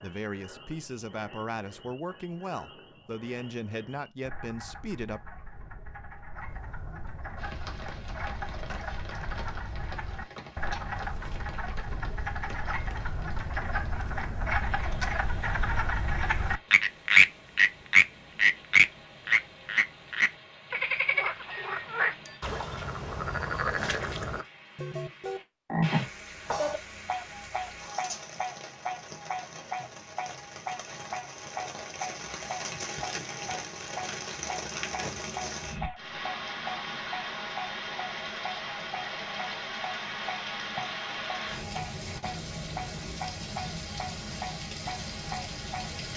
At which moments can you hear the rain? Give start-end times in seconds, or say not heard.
7.3-46.1.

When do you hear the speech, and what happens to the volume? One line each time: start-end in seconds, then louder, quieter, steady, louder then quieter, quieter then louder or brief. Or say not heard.
0.0-5.2 steady.